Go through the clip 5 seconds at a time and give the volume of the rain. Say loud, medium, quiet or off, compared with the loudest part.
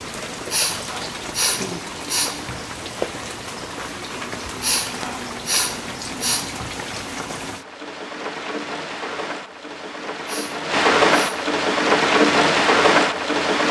quiet, quiet, loud.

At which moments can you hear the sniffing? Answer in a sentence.
The sniffing can be heard from 0.5 to 2.6 s, from 4.6 to 6.8 s and from 10.2 to 11.4 s.